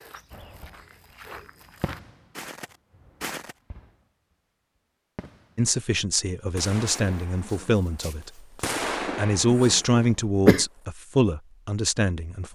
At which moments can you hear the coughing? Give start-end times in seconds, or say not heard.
9.7-10.7.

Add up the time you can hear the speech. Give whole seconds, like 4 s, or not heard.
6 s.